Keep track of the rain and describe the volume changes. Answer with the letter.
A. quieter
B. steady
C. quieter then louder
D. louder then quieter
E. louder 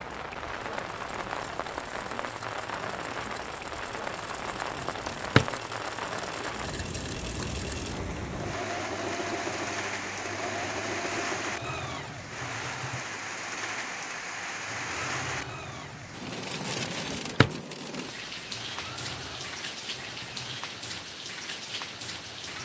B.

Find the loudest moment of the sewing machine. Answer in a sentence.
The volume of the sewing machine peaks at 9 seconds.